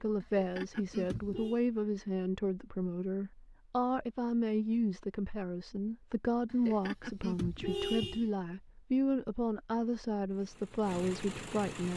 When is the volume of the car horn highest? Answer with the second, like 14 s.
8 s.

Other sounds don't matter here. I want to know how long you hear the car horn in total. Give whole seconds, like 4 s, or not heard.
3 s.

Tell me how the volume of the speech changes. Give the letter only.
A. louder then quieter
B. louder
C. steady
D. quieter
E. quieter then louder
C.